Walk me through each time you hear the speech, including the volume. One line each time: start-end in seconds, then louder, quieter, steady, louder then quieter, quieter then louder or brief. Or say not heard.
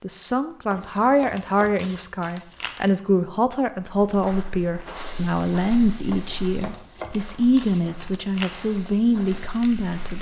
0.0-10.1 steady.